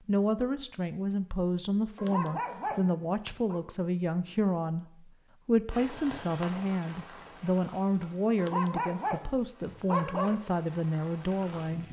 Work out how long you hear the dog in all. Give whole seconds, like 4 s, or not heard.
4 s.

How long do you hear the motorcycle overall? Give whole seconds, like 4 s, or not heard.
not heard.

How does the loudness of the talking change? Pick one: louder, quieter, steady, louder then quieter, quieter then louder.
steady.